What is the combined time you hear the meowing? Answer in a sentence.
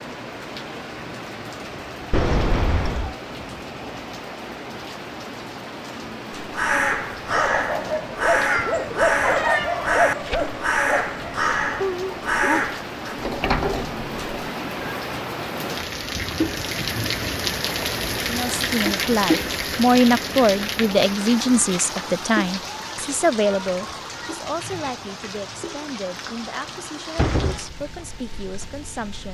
The meowing can be heard for 2 seconds in total.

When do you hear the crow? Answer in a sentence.
The crow can be heard from 6.3 to 13.2 s.